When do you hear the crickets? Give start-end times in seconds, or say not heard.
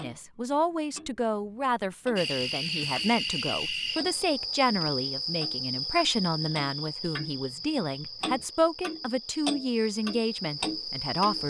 2.1-11.4.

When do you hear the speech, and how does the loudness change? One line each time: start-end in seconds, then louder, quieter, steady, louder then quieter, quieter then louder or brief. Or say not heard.
0.0-11.4 steady.